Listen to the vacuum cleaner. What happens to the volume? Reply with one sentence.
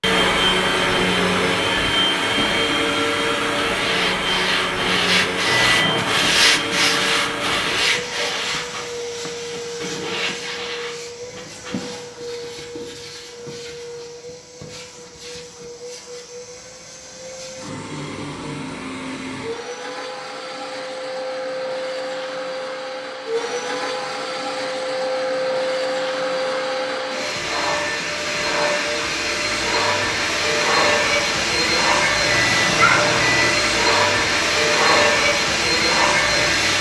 The volume of the vacuum cleaner goes down, then up.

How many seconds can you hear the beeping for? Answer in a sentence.
The beeping can be heard for 2 seconds in total.